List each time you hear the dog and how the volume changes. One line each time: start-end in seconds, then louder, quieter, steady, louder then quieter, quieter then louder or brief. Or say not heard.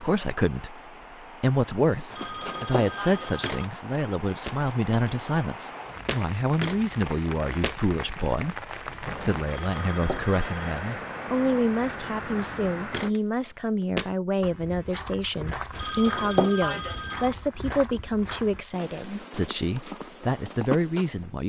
not heard.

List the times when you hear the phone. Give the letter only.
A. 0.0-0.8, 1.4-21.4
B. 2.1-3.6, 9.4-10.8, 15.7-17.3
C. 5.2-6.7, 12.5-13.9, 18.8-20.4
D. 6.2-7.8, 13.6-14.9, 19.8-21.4
B.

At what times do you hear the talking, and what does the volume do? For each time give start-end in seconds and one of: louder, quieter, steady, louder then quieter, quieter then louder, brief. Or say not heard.
0.0-0.8 brief
1.4-21.4 steady.